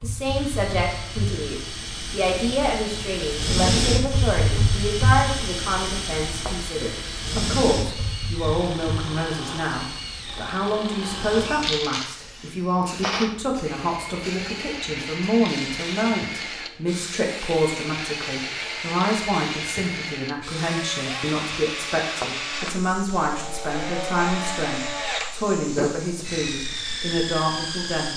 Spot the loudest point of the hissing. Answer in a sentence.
The volume of the hissing peaks at 4 seconds.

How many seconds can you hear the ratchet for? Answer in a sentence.
You can't hear the ratchet here.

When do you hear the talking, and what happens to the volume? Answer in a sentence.
The talking can be heard from 0.0 to 28.1 s, at a steady volume.